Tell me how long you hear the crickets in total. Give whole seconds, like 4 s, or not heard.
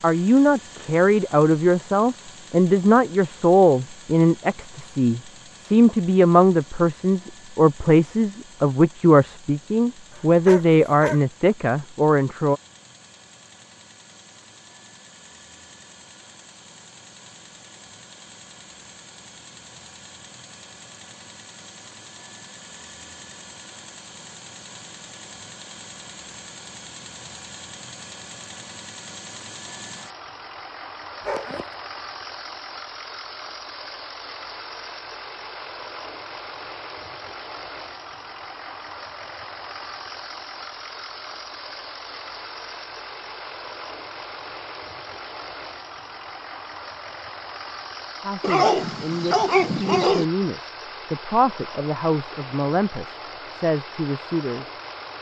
not heard.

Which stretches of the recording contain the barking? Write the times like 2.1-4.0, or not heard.
10.1-11.2, 31.2-31.7, 48.4-50.2.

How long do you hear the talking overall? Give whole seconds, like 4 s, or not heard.
19 s.